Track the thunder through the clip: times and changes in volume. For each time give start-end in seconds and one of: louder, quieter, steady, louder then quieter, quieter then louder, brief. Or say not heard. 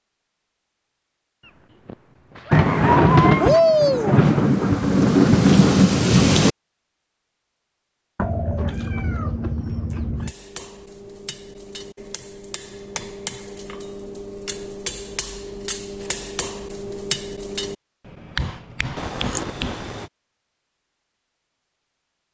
2.5-6.5 steady.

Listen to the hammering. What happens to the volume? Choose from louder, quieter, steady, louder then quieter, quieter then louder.
louder.